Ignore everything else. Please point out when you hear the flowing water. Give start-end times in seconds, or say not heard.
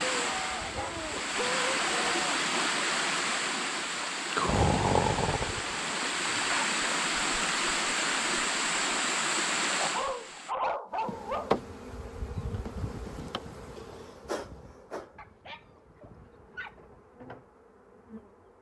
0.0-10.6.